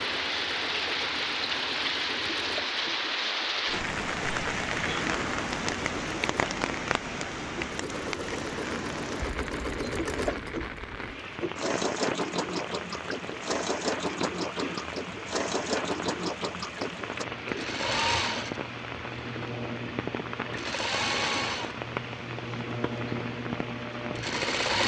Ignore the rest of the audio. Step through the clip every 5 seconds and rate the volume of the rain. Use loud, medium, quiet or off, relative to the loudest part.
loud, loud, medium, medium, medium.